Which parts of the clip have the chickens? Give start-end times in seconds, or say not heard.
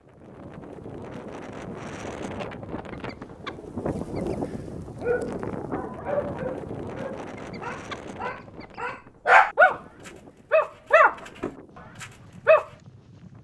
2.9-4.4, 7.3-8.8.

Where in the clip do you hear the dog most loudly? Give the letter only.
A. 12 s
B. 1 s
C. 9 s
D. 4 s
C.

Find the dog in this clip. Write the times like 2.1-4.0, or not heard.
5.0-12.7.